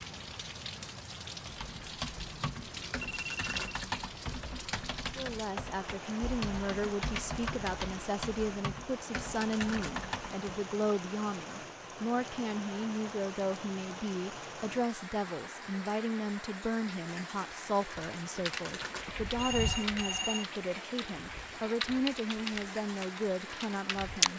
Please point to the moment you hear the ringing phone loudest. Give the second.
20 s.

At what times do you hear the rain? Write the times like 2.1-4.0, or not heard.
0.0-24.3.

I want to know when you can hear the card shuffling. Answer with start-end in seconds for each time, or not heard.
3.0-3.8, 9.2-10.0, 18.4-19.1.